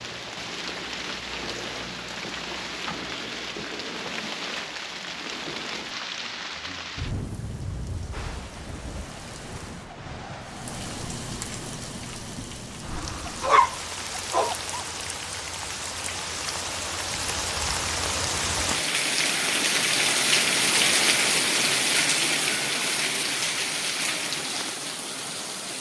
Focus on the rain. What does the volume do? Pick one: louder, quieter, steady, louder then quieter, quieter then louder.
louder.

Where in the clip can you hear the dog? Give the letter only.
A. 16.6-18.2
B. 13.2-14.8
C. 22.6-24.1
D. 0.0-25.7
B.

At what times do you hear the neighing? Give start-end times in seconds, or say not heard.
not heard.